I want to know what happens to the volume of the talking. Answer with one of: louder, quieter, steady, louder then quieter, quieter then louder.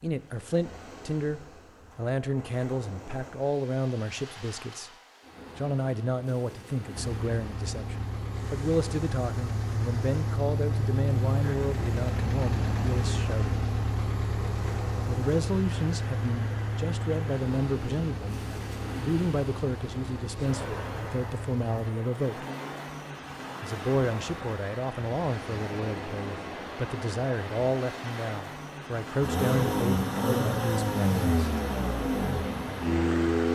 steady.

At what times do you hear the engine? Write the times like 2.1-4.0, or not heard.
6.9-21.8, 29.2-33.5.